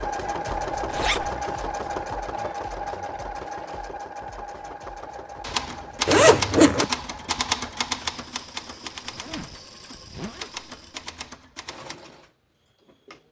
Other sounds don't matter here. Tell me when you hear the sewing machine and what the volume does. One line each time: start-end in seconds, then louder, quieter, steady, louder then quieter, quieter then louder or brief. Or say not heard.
0.0-13.2 quieter.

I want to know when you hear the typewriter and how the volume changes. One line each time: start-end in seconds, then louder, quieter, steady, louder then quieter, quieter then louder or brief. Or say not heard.
5.4-11.9 quieter then louder.